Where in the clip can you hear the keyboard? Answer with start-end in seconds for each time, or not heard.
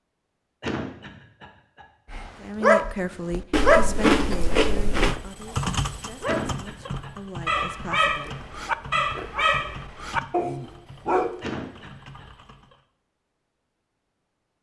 4.9-12.8.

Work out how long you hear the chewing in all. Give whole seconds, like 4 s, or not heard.
4 s.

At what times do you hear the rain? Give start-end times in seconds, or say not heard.
not heard.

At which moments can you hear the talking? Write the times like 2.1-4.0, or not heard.
2.4-8.3.